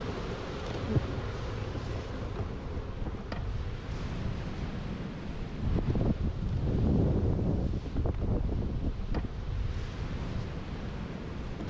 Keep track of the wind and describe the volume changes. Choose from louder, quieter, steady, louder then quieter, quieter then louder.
louder then quieter.